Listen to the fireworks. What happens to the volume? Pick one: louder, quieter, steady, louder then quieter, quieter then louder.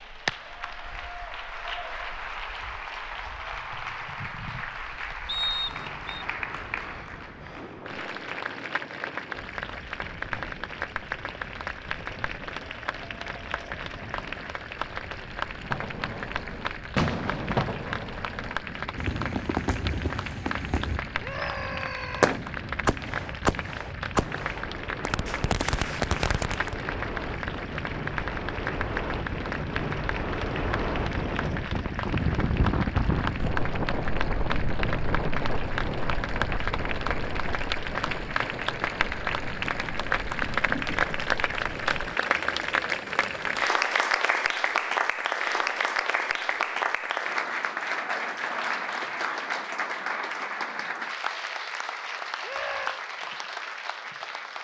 steady.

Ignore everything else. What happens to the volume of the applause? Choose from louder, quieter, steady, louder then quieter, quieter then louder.
louder.